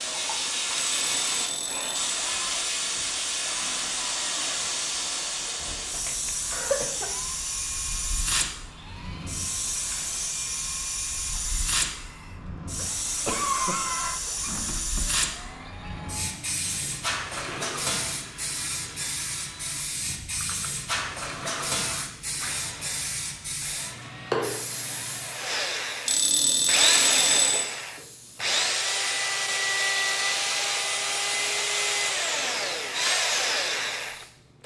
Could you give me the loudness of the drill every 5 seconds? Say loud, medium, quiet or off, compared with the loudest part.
quiet, quiet, quiet, quiet, quiet, loud, loud.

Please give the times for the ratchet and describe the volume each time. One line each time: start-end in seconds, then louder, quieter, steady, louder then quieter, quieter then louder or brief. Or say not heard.
not heard.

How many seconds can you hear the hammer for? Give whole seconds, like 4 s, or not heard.
not heard.